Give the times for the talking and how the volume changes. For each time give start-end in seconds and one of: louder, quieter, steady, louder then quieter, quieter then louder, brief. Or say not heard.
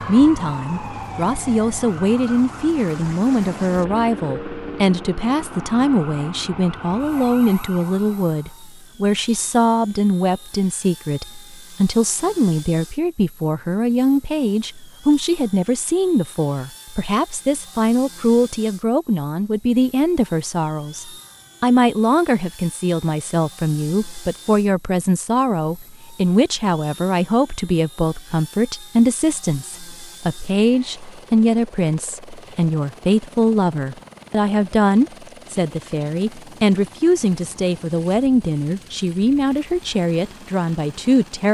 0.1-41.4 steady.